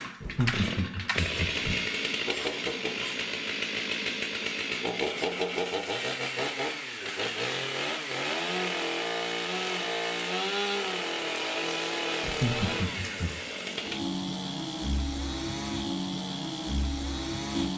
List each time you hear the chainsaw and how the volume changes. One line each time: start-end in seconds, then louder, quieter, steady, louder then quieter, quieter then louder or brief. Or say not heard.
0.0-17.7 steady.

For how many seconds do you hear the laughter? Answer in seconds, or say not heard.
3 s.